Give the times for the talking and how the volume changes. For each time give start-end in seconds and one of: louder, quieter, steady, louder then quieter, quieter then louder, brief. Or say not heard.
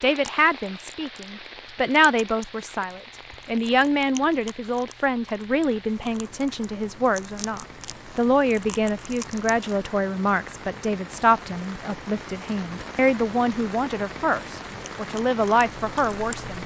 0.0-16.6 steady.